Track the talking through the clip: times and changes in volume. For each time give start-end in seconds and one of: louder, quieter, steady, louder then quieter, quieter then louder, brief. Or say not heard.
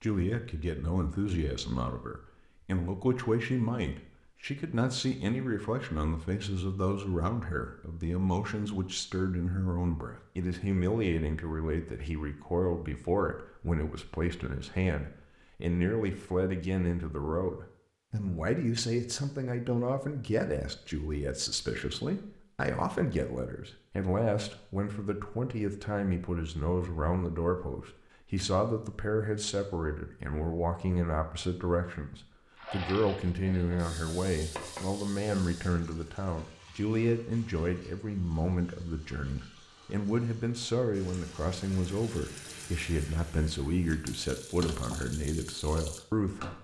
0.0-46.6 steady.